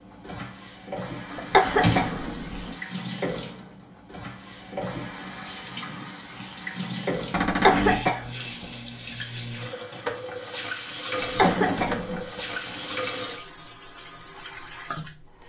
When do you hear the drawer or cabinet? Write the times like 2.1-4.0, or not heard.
1.6-2.8, 7.3-8.1, 11.2-12.3.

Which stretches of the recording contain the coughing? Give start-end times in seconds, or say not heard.
1.3-2.1, 7.5-8.2, 11.2-12.9.